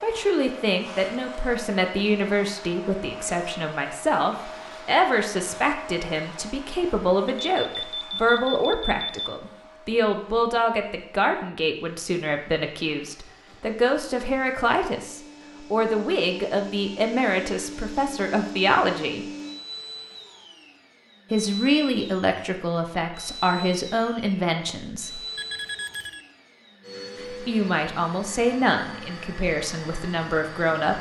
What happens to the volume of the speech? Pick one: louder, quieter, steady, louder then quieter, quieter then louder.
steady.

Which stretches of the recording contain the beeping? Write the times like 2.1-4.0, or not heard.
7.2-9.3, 25.4-26.2.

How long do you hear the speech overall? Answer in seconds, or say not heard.
27 s.